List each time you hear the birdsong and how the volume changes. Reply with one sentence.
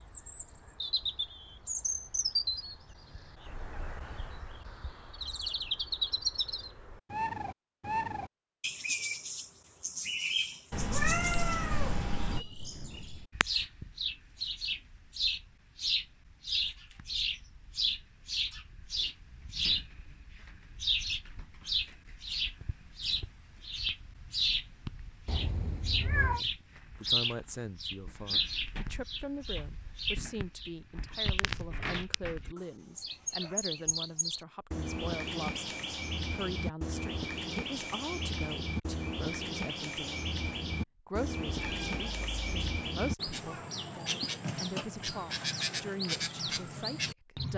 The birdsong can be heard from 0.0 to 47.5 s, at a steady volume.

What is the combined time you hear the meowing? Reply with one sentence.
You can hear the meowing for 4 seconds altogether.